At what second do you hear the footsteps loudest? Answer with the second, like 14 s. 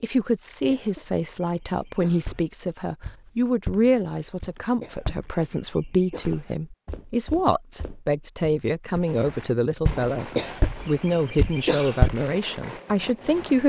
12 s.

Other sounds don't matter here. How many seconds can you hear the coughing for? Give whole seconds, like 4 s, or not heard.
5 s.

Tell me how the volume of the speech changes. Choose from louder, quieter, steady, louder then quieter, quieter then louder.
steady.